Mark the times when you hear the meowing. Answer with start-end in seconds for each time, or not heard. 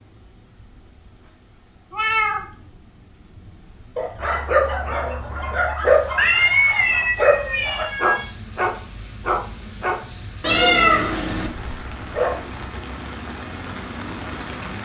1.9-2.5, 6.2-8.3, 10.4-11.5.